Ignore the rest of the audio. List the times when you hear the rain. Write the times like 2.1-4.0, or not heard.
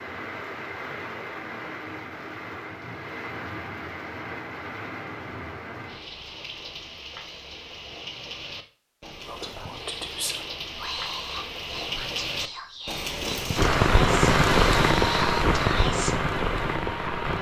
0.0-17.3.